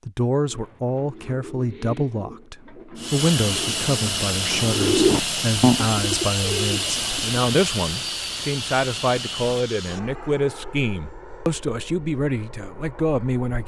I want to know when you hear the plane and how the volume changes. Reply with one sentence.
You can hear the plane from 3.0 to 13.6 s, getting quieter.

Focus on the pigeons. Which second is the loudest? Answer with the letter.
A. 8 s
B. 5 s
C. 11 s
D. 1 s
B.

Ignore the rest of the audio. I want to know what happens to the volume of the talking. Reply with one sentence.
The loudness of the talking stays about the same.